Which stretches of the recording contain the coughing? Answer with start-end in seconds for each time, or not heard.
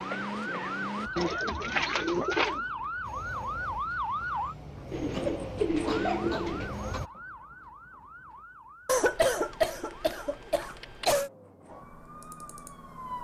0.1-1.4, 5.1-7.0, 8.8-11.3.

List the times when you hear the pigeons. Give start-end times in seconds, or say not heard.
1.1-2.6, 4.9-6.8, 9.5-11.2.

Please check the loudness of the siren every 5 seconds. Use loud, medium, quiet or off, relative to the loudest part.
loud, medium, medium.